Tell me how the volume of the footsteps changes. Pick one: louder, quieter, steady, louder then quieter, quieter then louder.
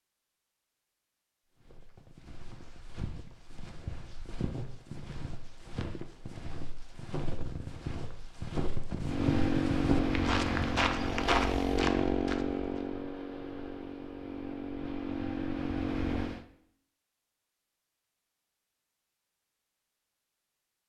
louder.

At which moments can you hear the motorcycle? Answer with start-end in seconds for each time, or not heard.
9.0-16.4.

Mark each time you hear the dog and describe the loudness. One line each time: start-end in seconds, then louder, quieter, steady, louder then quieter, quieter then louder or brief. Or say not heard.
not heard.